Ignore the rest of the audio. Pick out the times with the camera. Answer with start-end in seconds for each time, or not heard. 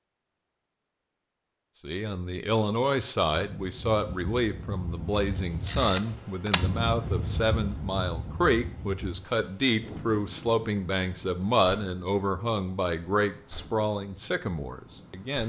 5.1-6.7.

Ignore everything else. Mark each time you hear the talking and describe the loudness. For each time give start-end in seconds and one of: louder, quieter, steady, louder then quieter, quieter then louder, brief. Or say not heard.
1.8-15.4 steady.